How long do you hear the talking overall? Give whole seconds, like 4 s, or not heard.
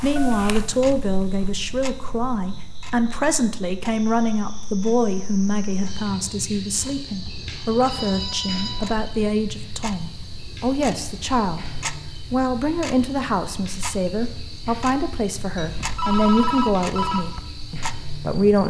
18 s.